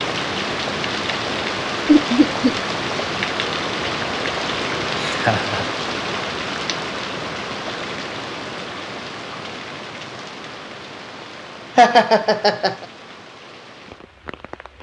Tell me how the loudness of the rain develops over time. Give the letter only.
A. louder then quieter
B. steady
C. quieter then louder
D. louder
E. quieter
E.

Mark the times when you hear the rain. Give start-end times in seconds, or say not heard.
0.0-14.7.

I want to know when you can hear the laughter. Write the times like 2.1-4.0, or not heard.
1.9-2.5, 5.0-5.7, 11.8-12.8.